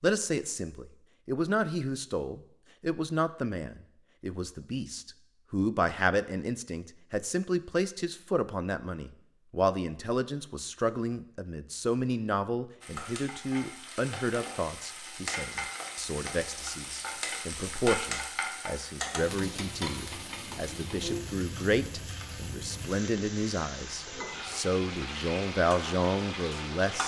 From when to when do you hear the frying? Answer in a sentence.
The frying can be heard from 12.8 to 27.0 s.